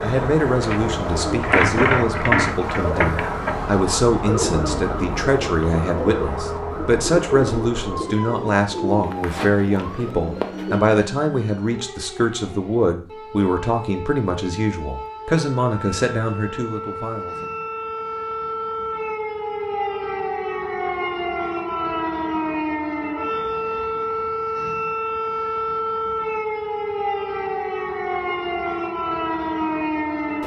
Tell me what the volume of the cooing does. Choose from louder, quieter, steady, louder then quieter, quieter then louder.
quieter.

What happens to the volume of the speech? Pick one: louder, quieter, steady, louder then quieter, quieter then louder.
steady.